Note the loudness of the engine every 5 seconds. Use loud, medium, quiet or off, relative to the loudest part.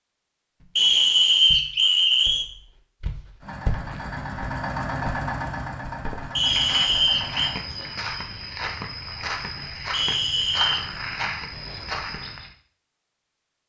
loud, loud, off.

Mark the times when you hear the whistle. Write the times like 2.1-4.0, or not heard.
0.8-2.5, 6.3-7.5, 9.9-10.8.